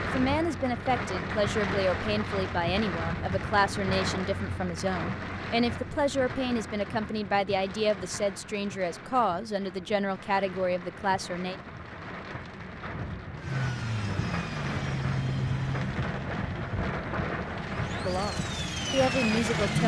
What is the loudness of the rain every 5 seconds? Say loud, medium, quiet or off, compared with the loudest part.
loud, medium, medium, loud.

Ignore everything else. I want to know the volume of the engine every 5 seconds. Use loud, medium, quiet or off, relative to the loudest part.
off, off, loud, loud.